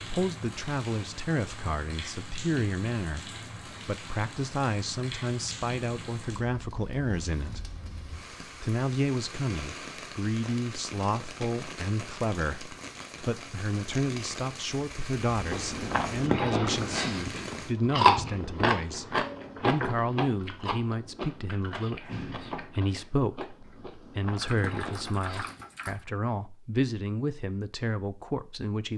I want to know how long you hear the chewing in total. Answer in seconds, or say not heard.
10 s.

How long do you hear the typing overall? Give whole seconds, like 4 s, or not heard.
2 s.